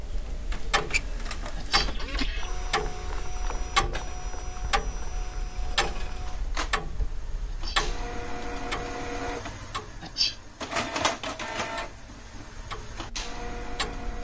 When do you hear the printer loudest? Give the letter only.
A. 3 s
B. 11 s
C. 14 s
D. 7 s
B.